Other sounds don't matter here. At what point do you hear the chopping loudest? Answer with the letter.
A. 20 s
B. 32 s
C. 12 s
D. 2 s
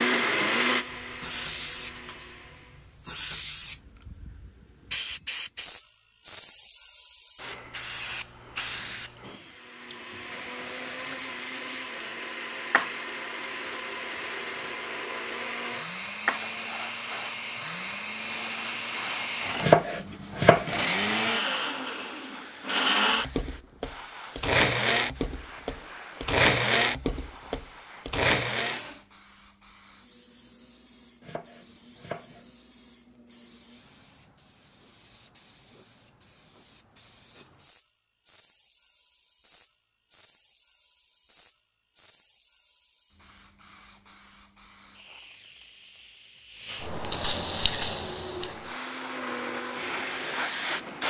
A.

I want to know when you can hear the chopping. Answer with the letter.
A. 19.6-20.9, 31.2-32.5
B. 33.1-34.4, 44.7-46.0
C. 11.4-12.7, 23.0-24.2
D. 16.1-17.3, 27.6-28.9
A.